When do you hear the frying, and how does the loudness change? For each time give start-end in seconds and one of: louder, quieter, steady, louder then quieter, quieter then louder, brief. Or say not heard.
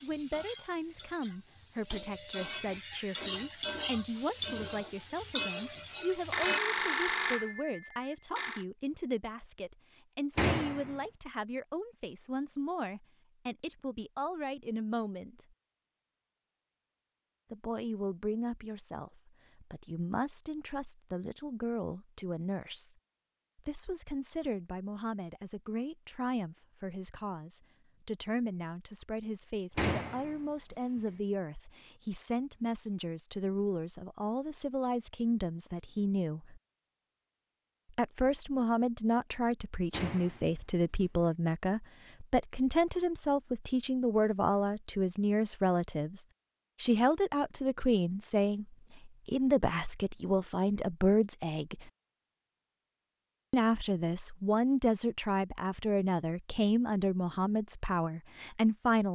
0.0-6.6 louder.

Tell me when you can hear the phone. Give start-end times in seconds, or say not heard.
6.3-8.7.